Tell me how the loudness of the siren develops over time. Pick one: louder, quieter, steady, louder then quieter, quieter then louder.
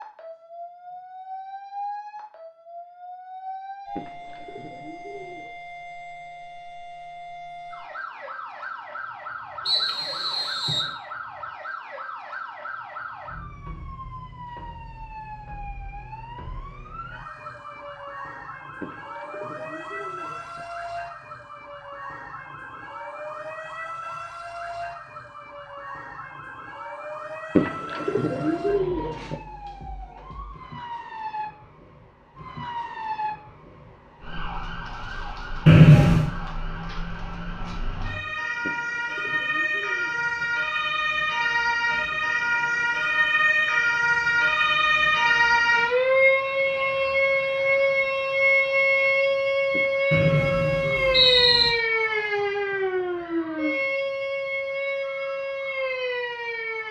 louder.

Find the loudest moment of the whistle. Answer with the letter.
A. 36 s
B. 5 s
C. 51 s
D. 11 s
A.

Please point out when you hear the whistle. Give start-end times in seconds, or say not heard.
9.7-10.9, 35.6-36.3, 50.1-51.7.